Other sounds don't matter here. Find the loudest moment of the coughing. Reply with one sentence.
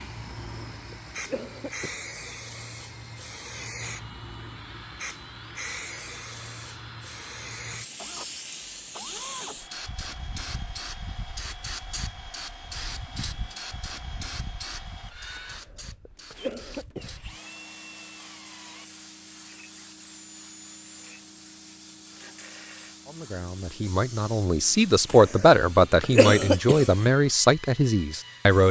The volume of the coughing peaks at 26 seconds.